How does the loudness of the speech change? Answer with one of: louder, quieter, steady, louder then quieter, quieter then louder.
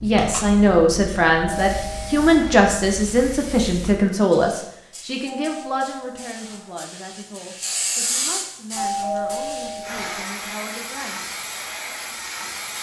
quieter.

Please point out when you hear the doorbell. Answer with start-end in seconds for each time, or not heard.
1.4-2.7, 5.2-6.8, 8.8-10.2.